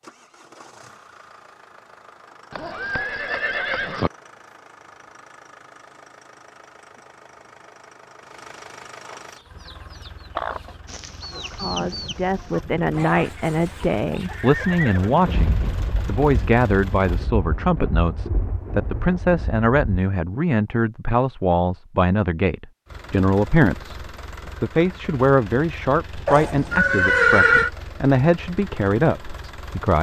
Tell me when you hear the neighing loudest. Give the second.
27 s.